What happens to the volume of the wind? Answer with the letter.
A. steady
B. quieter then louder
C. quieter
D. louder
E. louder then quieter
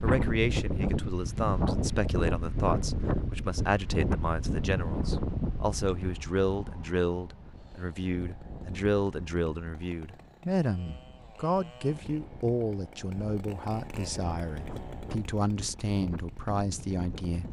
B.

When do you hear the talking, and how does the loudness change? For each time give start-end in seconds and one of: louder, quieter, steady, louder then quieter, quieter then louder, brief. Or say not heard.
0.0-17.4 steady.